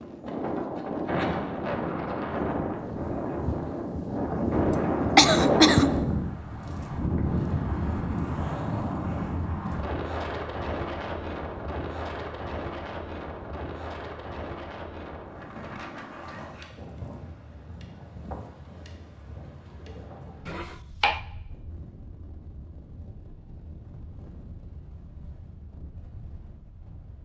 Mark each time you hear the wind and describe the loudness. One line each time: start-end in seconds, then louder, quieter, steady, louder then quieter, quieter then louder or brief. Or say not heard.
0.0-27.2 quieter.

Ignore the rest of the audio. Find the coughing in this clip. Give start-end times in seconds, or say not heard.
4.7-5.9, 20.4-21.2.